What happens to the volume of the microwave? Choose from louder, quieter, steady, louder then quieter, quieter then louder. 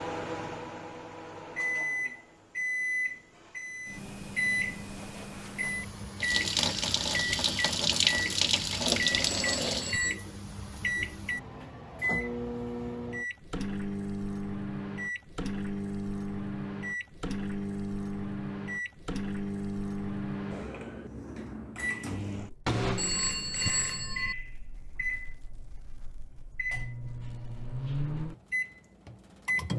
steady.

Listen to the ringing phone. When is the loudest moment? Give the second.
24 s.